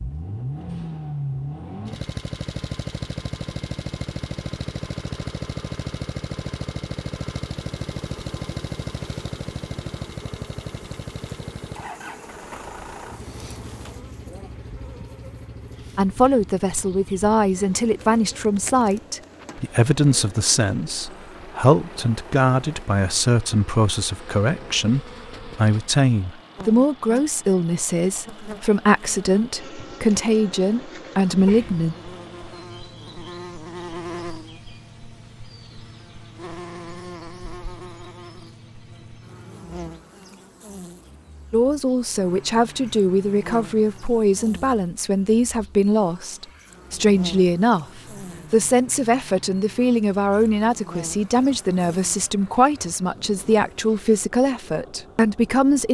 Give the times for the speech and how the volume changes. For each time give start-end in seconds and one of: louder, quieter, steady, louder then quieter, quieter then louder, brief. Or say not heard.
15.9-31.9 steady
41.5-55.8 steady.